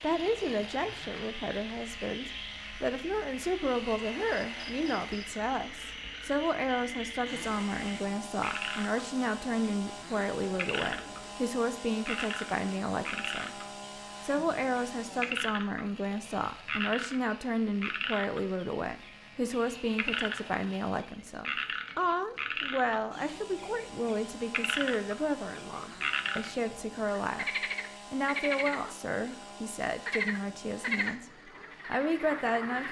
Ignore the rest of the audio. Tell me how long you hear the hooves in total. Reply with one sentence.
The hooves can't be heard in this clip.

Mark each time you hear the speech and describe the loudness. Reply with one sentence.
The speech can be heard from 0.0 to 13.6 s, at a steady volume; from 14.2 to 31.2 s, at a steady volume; and briefly from 31.9 to 32.8 s.